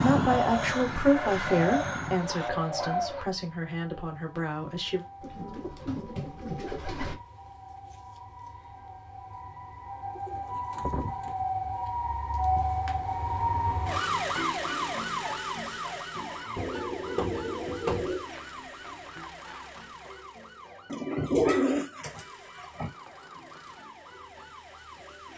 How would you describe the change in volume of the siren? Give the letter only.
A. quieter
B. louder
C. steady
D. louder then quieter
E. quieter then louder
D.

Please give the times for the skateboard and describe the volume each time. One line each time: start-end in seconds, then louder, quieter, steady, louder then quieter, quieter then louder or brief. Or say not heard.
not heard.